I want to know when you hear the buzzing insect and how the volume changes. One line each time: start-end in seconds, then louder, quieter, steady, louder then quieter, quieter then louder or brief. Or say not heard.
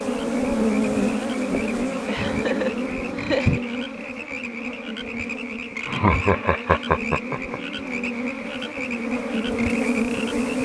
0.0-10.6 quieter then louder.